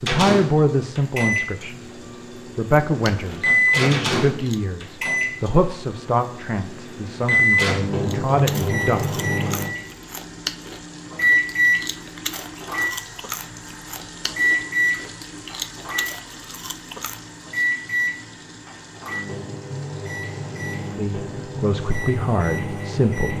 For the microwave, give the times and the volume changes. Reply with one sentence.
The microwave can be heard from 0.1 to 23.3 s, getting quieter.